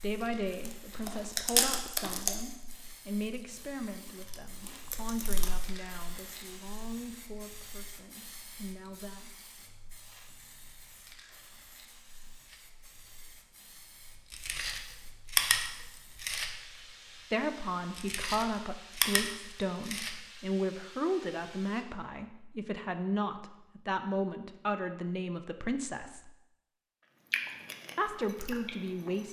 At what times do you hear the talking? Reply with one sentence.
The talking can be heard from 0.0 to 9.3 s, from 17.3 to 26.4 s and from 27.9 to 29.2 s.